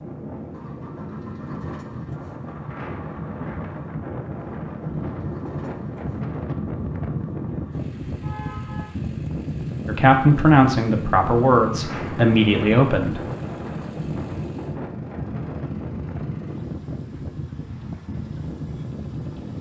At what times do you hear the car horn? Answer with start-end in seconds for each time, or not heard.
8.2-8.9.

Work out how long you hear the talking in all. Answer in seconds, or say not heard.
3 s.